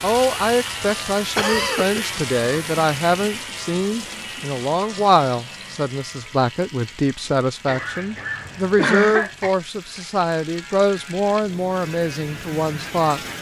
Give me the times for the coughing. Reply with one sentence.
You can hear the coughing from 1.4 to 2.0 s and from 7.7 to 9.6 s.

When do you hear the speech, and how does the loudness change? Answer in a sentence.
The speech can be heard from 0.0 to 13.2 s, at a steady volume.